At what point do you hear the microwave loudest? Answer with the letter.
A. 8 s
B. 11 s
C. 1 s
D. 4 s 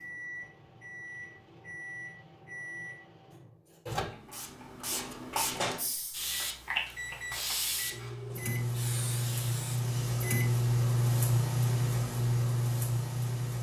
B.